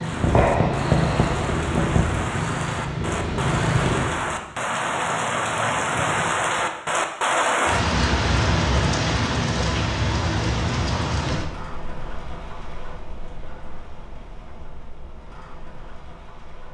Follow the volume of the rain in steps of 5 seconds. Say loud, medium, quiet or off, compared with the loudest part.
medium, loud, medium, quiet.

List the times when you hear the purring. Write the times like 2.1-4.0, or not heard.
0.0-4.4.